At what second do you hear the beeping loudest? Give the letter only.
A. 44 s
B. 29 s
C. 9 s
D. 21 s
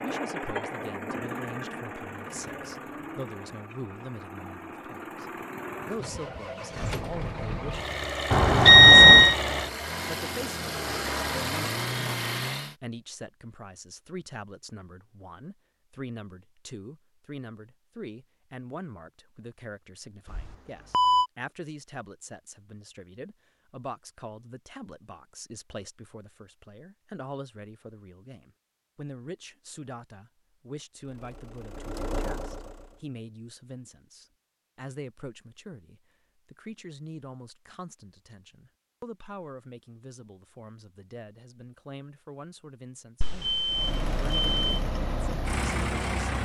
C.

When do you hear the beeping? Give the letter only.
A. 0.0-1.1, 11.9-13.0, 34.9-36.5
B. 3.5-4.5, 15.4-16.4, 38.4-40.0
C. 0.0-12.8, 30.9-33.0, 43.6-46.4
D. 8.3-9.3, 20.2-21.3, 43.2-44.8
D.